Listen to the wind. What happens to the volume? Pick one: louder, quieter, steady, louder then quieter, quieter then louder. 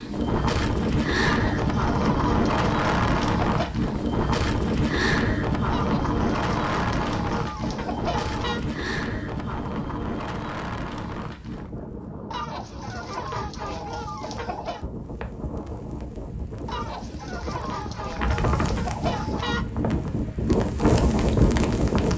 quieter then louder.